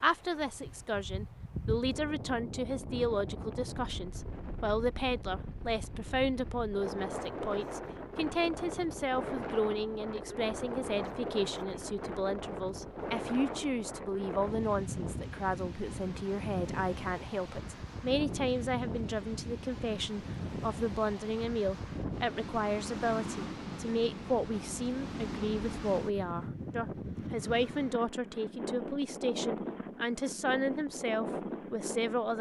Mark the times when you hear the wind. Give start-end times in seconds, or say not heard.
0.0-32.3.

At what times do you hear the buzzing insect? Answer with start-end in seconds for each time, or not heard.
not heard.